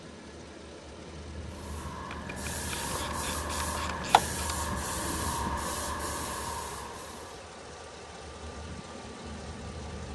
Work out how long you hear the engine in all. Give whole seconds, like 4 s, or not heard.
10 s.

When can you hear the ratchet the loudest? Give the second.
4 s.